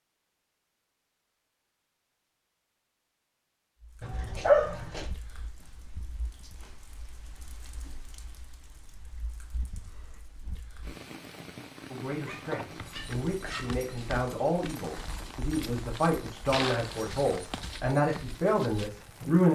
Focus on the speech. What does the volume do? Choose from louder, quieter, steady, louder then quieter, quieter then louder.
louder.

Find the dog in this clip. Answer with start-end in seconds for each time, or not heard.
4.0-5.1, 12.2-13.7.